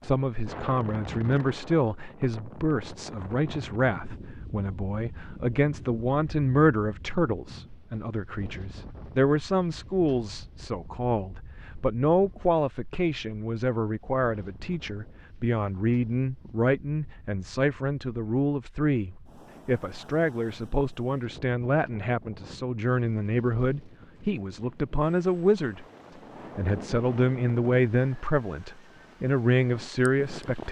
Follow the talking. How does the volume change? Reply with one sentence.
The volume of the talking stays about the same.